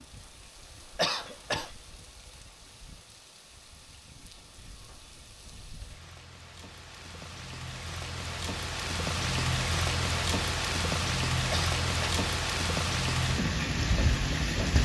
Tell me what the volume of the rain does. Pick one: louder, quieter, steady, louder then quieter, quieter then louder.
louder.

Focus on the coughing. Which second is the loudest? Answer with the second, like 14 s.
1 s.